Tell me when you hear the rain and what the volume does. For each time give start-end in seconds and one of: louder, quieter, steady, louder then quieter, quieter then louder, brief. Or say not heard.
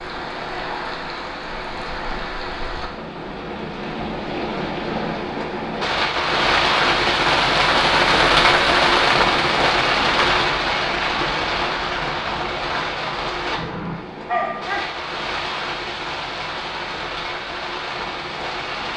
0.0-18.9 louder then quieter.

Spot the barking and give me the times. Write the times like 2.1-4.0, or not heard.
14.2-14.9.